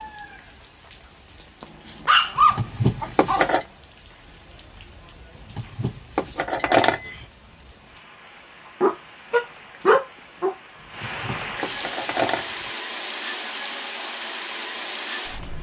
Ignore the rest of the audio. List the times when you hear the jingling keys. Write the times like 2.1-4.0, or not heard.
2.4-3.6, 5.3-7.3, 10.8-12.8.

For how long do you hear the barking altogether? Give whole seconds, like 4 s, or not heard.
4 s.